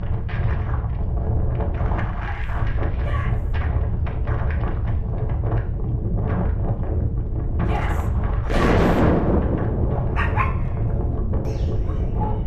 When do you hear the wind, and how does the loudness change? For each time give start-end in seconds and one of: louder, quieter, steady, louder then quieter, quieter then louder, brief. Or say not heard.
0.0-12.4 steady.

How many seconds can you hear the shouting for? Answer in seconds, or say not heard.
3 s.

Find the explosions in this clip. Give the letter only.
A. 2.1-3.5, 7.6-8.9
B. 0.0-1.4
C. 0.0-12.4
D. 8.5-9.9
D.